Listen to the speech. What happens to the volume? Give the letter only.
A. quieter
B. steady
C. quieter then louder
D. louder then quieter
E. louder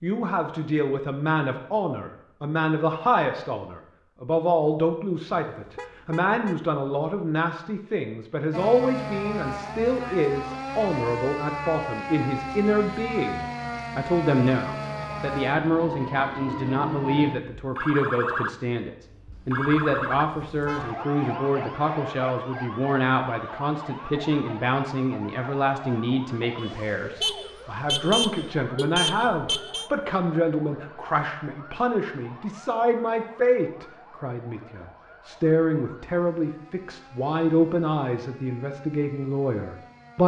B.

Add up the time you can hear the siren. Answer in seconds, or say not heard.
32 s.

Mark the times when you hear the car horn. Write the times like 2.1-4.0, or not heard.
5.5-6.7, 19.3-20.9, 27.2-29.9.